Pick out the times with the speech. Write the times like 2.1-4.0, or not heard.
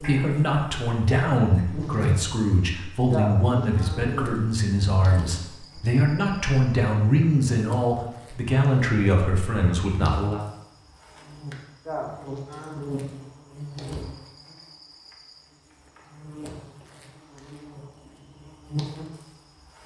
0.0-10.4.